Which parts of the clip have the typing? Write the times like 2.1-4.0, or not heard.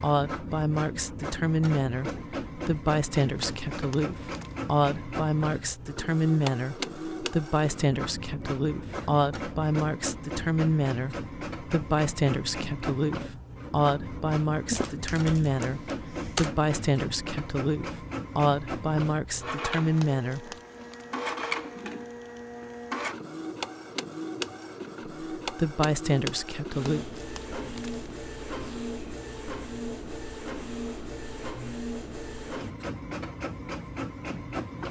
14.7-16.5.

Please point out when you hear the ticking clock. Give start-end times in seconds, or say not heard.
not heard.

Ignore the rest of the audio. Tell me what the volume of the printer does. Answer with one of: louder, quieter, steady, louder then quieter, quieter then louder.
steady.